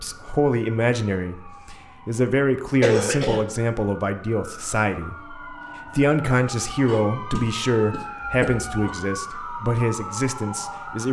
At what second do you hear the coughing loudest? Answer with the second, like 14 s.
3 s.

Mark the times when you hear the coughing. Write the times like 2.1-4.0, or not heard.
2.8-3.5, 6.8-8.7.